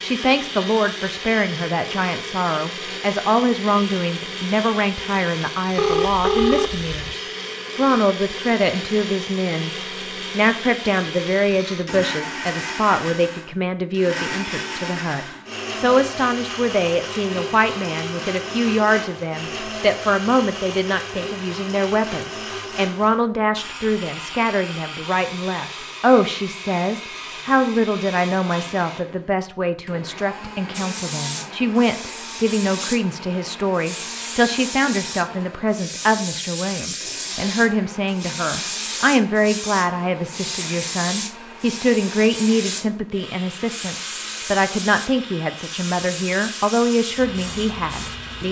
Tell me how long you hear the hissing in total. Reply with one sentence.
The hissing can be heard for 18 seconds in total.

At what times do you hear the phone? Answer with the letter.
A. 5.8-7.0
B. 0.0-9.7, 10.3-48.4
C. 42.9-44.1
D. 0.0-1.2
A.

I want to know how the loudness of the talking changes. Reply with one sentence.
The loudness of the talking stays about the same.